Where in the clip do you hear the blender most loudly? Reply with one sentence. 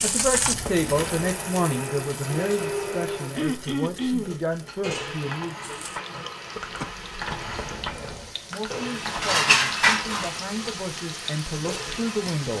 The loudest moment of the blender is at 3 seconds.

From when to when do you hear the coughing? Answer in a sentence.
The coughing can be heard from 3.4 to 4.3 s and from 6.5 to 7.5 s.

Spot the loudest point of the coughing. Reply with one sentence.
The volume of the coughing peaks at 4 seconds.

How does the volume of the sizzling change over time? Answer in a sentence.
The loudness of the sizzling goes down, then up.